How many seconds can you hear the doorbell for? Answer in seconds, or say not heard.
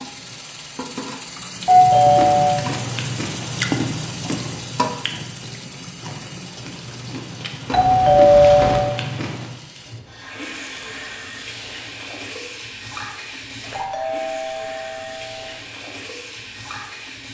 4 s.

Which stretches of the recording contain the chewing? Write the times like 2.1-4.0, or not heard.
1.7-9.6.